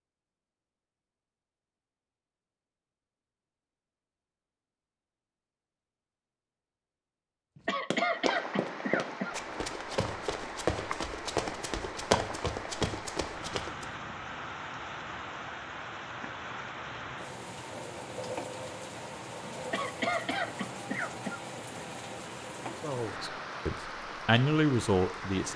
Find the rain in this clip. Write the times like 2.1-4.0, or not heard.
8.1-25.5.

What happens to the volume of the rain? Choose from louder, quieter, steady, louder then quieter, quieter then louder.
steady.